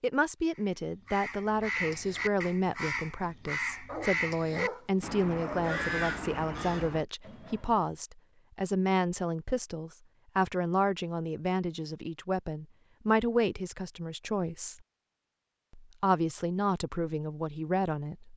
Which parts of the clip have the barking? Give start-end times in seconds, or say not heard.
3.9-5.9.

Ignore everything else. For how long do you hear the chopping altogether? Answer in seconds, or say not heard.
not heard.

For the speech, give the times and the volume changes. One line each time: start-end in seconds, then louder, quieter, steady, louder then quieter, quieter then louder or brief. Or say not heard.
0.0-14.8 steady
15.7-18.3 brief.